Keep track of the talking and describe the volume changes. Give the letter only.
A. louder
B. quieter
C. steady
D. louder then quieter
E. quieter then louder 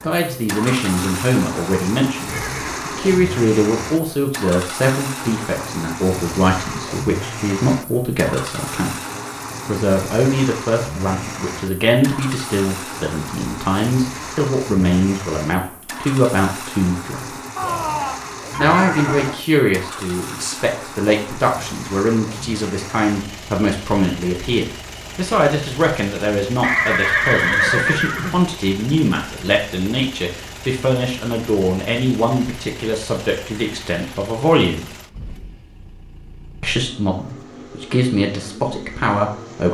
C.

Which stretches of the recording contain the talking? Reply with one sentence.
You can hear the talking from 0.0 to 8.9 s, from 9.7 to 17.4 s, from 18.6 to 34.9 s and from 36.6 to 39.6 s.